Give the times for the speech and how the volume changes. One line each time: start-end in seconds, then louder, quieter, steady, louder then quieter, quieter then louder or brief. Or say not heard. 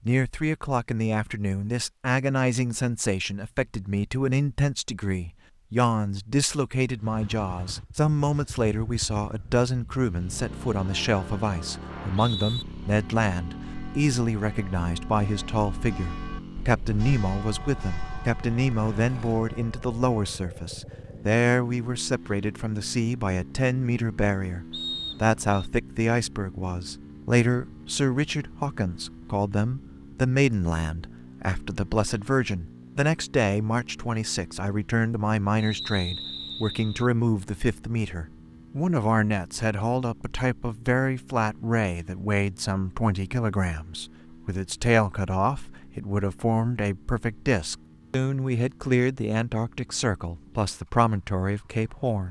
0.1-52.2 steady.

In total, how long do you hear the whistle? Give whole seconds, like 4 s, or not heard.
3 s.